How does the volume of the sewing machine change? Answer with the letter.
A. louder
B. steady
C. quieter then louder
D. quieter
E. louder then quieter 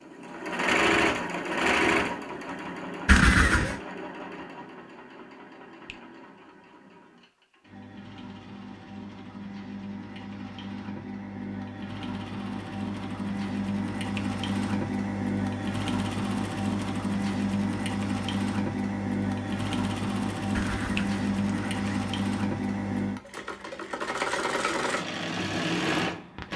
C.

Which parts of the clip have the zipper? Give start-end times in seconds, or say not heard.
3.0-3.8, 20.5-22.1.